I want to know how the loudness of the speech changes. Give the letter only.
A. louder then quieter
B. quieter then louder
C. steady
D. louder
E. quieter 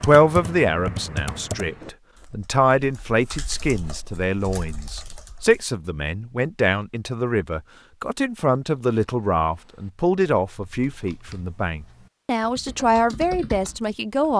C.